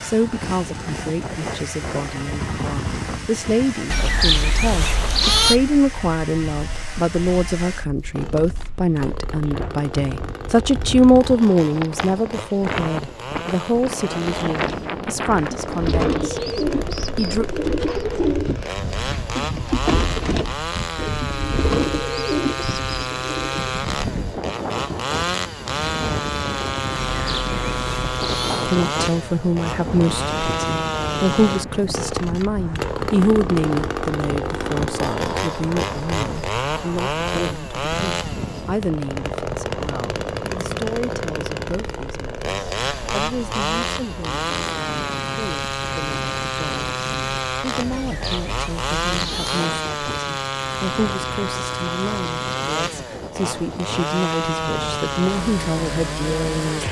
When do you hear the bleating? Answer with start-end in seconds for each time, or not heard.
3.9-5.6, 27.1-28.7, 47.9-49.7.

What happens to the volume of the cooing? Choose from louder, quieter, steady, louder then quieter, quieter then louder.
steady.